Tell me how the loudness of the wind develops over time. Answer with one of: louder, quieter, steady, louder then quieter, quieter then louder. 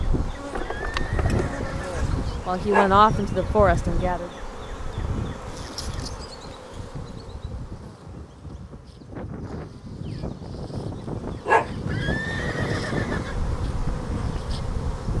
quieter then louder.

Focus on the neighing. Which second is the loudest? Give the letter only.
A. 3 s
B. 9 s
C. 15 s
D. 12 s
D.